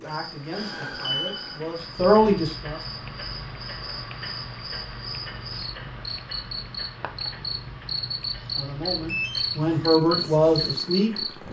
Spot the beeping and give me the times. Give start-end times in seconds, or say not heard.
0.8-1.5, 9.1-9.6.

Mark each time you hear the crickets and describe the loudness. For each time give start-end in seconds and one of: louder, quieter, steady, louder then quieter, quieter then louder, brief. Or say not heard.
0.0-11.4 louder.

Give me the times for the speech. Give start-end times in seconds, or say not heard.
0.0-3.0, 8.6-11.4.